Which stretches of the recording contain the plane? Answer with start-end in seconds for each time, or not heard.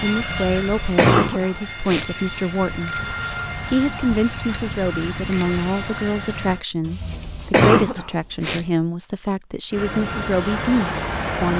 0.0-6.7, 9.7-11.5.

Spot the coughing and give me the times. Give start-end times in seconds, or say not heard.
0.3-2.1, 6.8-8.7.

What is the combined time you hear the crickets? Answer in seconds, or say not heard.
not heard.